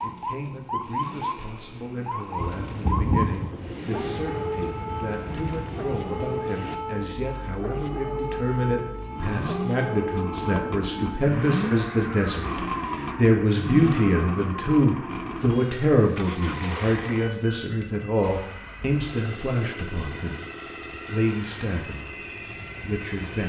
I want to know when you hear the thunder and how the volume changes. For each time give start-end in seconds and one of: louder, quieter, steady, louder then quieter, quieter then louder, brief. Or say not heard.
2.4-6.5 quieter.